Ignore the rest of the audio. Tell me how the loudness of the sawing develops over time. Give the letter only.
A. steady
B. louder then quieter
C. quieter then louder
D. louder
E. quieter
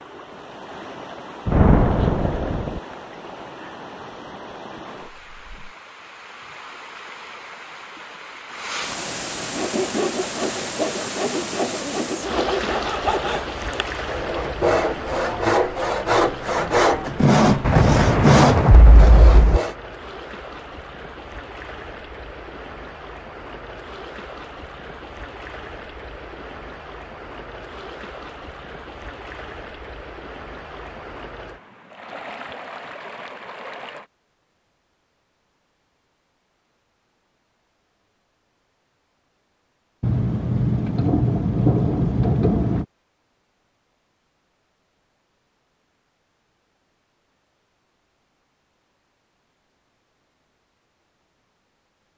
D.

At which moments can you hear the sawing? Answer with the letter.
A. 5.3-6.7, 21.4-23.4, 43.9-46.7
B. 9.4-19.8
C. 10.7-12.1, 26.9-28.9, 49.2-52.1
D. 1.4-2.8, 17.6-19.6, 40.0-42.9
B.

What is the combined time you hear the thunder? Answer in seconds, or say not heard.
6 s.